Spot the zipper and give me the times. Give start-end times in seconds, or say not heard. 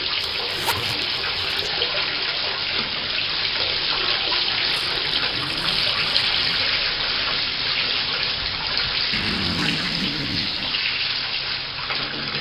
0.2-1.7, 4.7-6.8, 9.1-10.9.